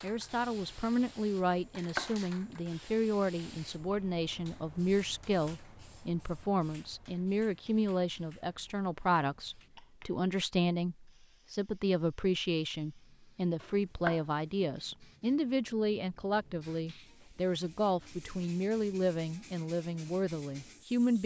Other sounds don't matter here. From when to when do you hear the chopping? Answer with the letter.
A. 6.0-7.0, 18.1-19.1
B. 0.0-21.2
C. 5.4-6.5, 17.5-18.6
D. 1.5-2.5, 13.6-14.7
D.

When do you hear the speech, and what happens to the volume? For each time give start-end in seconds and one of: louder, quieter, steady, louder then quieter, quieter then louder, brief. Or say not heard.
0.0-21.2 steady.